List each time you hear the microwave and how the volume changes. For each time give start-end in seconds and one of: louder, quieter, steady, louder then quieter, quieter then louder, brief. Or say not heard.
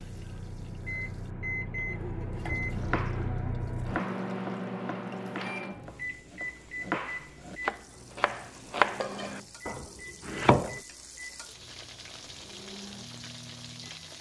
0.0-14.1 quieter.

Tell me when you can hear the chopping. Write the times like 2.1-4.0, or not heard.
2.8-10.8.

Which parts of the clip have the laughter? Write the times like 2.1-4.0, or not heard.
1.6-2.5.